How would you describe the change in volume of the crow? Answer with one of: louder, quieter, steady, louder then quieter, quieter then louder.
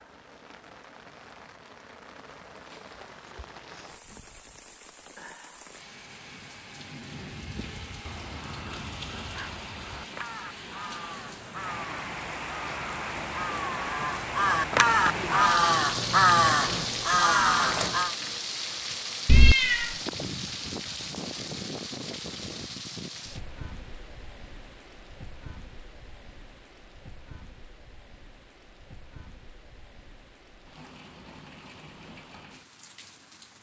louder.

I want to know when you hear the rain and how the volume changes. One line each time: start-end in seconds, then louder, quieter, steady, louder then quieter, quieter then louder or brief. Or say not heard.
0.0-33.5 louder then quieter.